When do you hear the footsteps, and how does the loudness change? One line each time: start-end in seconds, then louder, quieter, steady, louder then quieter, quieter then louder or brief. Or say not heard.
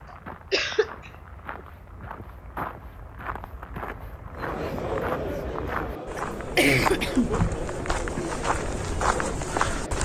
0.0-10.0 louder.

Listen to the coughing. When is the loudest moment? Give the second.
7 s.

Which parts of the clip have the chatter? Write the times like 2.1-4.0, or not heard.
4.3-10.0.